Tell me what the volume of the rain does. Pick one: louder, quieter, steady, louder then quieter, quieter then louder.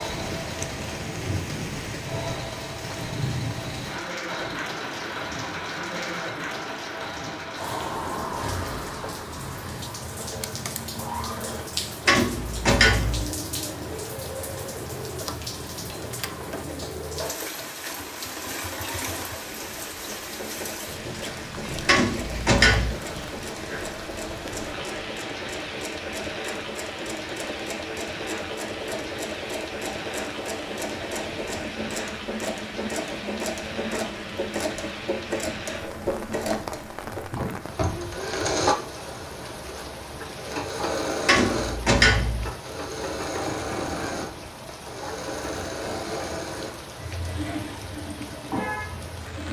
quieter.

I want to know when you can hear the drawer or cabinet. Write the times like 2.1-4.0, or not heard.
12.1-13.3, 21.9-22.9, 41.2-42.5.